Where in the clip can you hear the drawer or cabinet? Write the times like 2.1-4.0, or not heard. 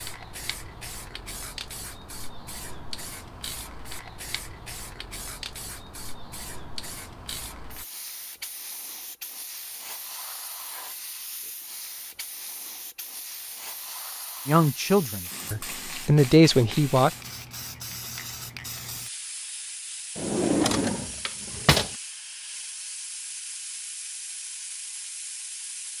20.1-21.9.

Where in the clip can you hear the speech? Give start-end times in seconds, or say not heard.
14.4-17.1.